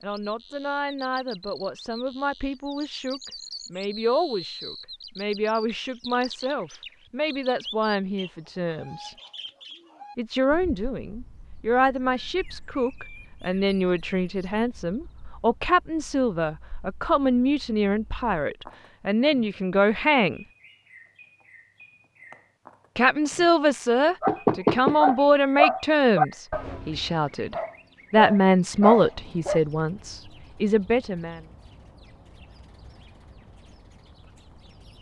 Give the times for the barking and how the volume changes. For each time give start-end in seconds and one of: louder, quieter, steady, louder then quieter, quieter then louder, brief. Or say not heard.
24.2-29.6 quieter then louder.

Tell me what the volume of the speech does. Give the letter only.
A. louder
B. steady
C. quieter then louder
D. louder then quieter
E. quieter
A.